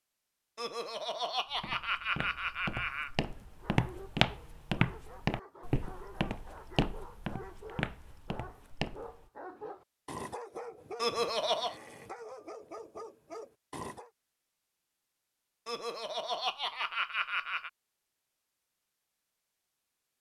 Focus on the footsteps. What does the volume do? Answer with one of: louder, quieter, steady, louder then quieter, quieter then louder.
louder then quieter.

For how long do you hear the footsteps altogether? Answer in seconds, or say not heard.
8 s.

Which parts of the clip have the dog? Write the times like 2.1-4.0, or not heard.
3.5-14.1.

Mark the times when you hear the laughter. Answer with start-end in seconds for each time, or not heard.
0.6-3.1, 10.9-11.8, 15.7-17.7.